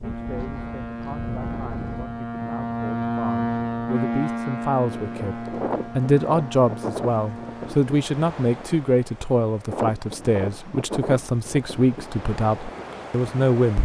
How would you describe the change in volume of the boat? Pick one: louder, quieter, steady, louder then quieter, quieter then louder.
louder then quieter.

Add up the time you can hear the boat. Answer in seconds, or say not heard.
8 s.